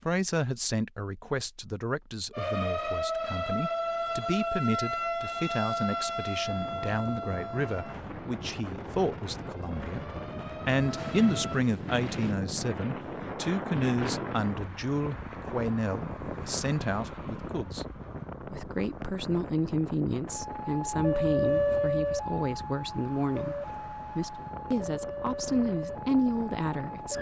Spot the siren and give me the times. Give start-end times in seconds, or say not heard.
2.3-11.7, 20.2-27.1.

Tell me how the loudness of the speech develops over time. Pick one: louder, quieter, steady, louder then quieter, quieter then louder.
steady.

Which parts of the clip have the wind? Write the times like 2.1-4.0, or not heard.
6.3-27.1.